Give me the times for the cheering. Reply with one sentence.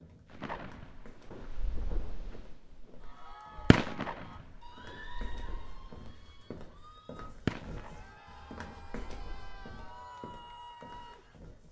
You can hear the cheering from 3.0 to 11.4 s.